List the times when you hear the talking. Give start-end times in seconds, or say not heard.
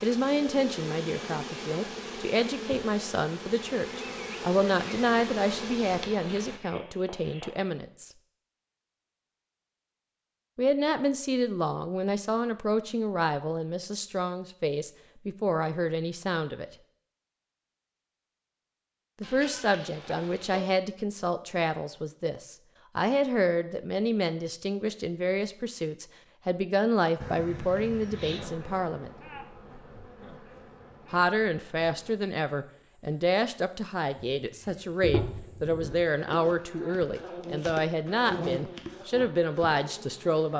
0.0-8.1, 10.6-16.6, 19.2-29.1, 31.1-40.5.